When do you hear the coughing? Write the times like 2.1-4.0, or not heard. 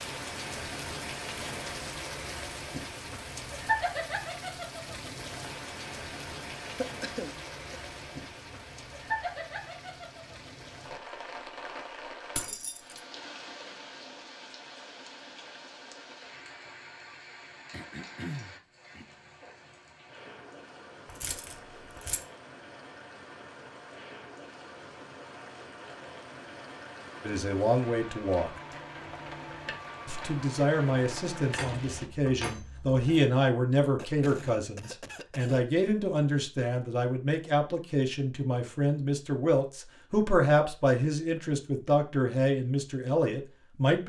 6.6-7.8, 17.7-19.1, 34.0-35.7.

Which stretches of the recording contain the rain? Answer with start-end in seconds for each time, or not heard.
0.0-32.1.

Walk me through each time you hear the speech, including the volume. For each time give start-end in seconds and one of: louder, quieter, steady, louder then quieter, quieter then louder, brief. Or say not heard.
27.2-28.5 brief
30.1-44.0 steady.